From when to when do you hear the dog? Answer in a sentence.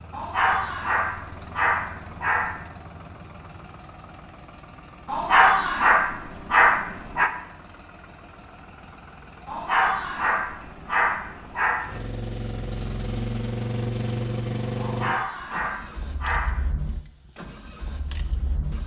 You can hear the dog from 0.1 to 2.6 s, from 5.0 to 7.3 s, from 9.4 to 11.8 s and from 14.8 to 16.6 s.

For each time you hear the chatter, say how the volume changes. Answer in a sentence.
The chatter can't be heard in this clip.